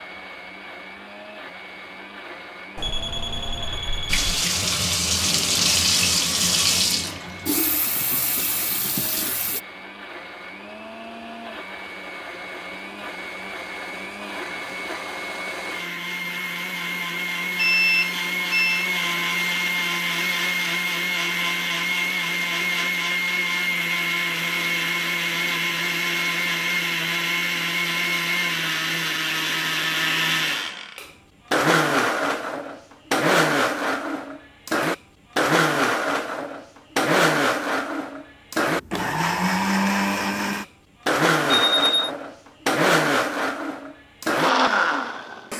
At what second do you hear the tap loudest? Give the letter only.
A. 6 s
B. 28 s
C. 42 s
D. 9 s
A.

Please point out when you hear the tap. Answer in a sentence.
The tap can be heard from 4.0 to 9.6 s.